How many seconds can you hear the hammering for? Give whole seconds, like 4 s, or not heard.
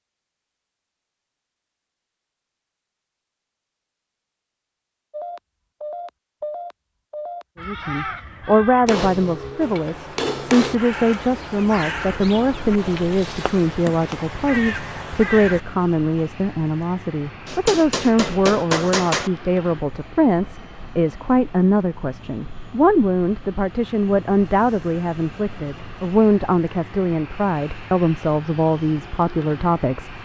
4 s.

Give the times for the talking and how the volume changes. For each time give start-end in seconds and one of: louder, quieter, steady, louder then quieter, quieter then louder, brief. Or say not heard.
7.6-30.2 steady.